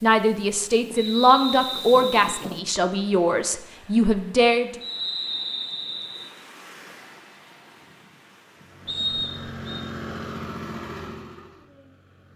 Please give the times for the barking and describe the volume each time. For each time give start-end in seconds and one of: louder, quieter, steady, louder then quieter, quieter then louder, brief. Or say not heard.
not heard.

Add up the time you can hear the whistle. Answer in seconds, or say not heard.
4 s.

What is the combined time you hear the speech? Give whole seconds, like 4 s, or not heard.
5 s.